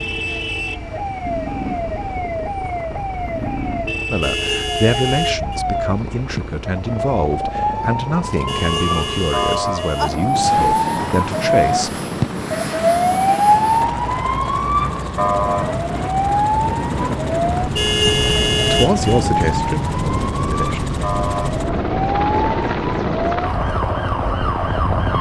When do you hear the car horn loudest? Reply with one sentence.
The volume of the car horn peaks at 18 seconds.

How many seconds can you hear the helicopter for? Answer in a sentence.
The helicopter can be heard for 25 seconds in total.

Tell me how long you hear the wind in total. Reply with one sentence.
The wind can be heard for 15 seconds in total.